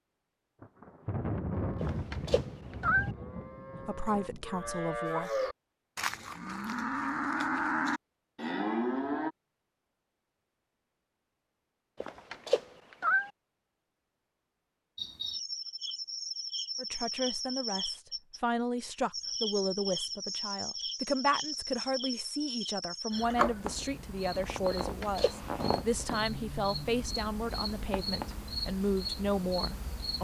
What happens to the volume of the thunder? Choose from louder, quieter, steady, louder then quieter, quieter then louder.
quieter.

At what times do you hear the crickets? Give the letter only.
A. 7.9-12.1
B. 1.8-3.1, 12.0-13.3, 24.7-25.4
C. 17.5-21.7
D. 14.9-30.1
D.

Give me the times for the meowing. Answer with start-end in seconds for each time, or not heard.
1.8-3.1, 12.0-13.3, 24.7-25.4.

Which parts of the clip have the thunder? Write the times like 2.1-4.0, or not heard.
0.6-4.8.